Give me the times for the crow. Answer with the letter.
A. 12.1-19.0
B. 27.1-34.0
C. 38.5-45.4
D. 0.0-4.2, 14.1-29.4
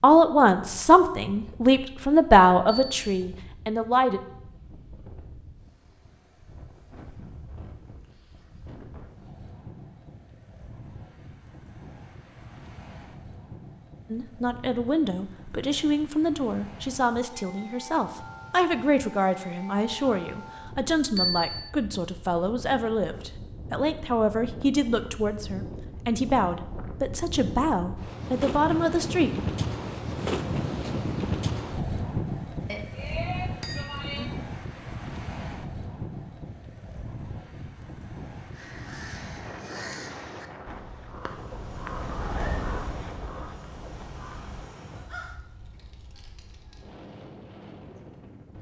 C.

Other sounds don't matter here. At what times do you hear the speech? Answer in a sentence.
You can hear the speech from 0.0 to 4.2 s and from 14.1 to 29.4 s.